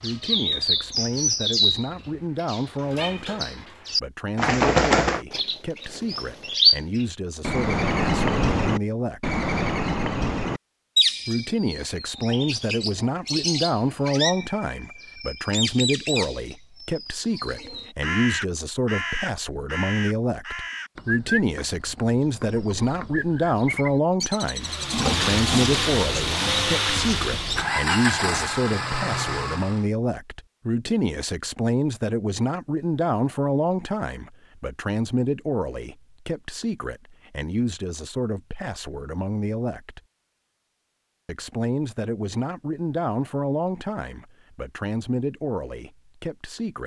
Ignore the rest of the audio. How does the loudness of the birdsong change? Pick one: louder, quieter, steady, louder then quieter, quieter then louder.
quieter.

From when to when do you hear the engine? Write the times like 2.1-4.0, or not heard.
24.6-29.9.